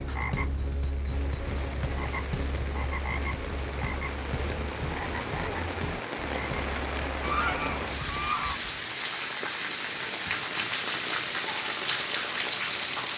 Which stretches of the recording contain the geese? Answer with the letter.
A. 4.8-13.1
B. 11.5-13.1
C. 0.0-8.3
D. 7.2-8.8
D.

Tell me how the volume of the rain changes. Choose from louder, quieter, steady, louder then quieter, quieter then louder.
louder.